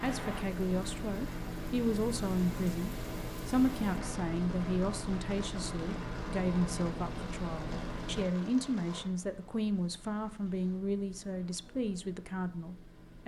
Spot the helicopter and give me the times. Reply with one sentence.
You can hear the helicopter from 0.0 to 13.2 s.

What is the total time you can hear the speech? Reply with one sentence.
The speech can be heard for 13 seconds in total.